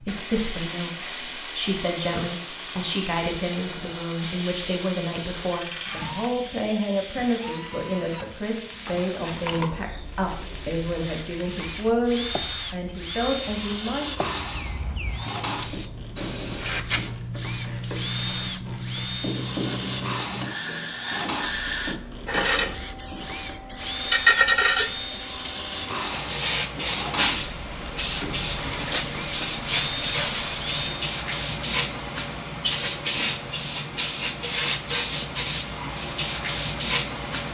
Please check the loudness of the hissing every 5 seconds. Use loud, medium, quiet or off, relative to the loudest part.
quiet, quiet, quiet, medium, loud, loud, loud, loud.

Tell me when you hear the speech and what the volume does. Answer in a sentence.
You can hear the speech from 0.0 to 14.2 s, at a steady volume.